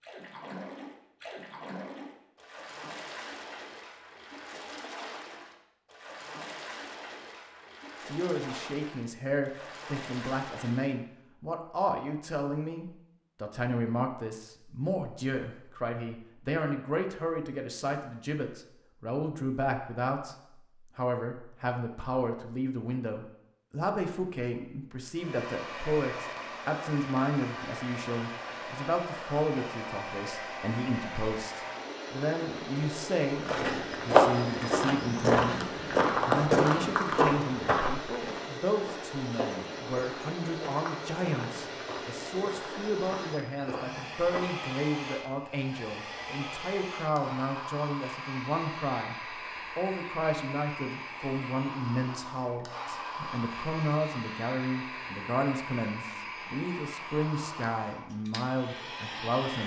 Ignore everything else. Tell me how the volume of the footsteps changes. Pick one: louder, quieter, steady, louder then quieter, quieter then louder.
quieter.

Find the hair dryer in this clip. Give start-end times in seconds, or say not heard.
25.1-59.6.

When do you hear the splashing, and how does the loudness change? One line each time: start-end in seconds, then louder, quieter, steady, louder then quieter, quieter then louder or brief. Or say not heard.
0.0-11.0 steady.